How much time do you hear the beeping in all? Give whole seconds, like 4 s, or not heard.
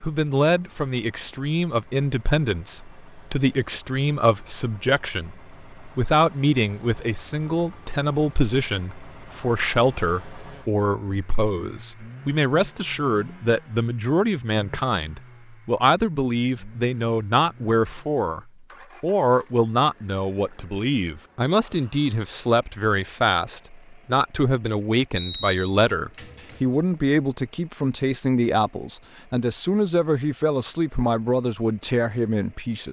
2 s.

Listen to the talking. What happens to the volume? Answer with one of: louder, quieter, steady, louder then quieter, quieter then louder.
steady.